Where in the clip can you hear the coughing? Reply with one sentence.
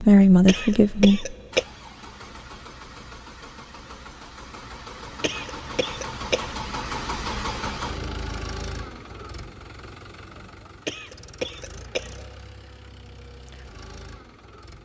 The coughing can be heard from 0.5 to 1.6 s, from 5.2 to 6.5 s and from 10.8 to 12.4 s.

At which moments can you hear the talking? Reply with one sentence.
You can hear the talking from 0.0 to 1.4 s.